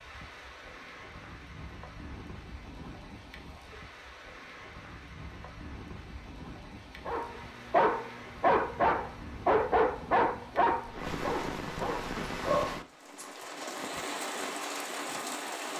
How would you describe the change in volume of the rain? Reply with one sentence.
The volume of the rain goes up.